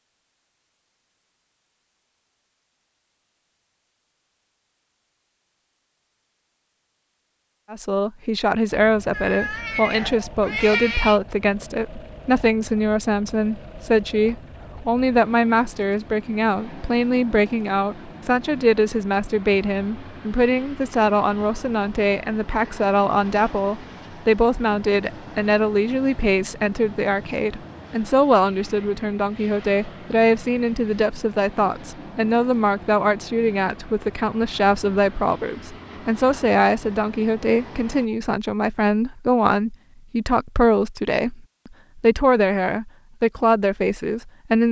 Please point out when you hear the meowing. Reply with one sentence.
You can hear the meowing from 9.1 to 11.2 s.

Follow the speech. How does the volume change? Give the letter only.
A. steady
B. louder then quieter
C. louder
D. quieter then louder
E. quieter
A.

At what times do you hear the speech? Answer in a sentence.
The speech can be heard from 7.7 to 44.6 s.